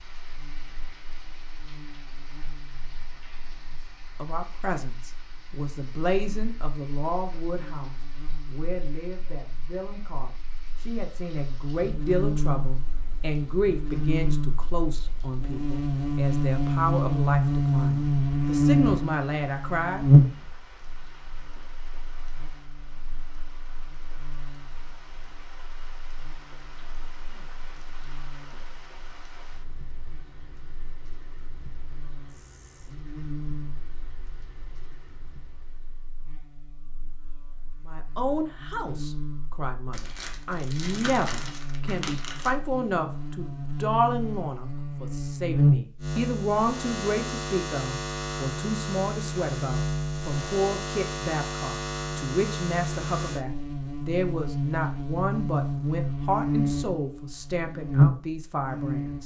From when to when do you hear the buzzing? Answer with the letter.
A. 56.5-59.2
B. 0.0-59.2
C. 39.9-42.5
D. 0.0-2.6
B.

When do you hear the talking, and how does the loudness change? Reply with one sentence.
You can hear the talking from 4.2 to 20.1 s, getting quieter then louder; and from 37.9 to 59.2 s, at a steady volume.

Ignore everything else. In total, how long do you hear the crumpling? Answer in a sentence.
You can hear the crumpling for 3 seconds altogether.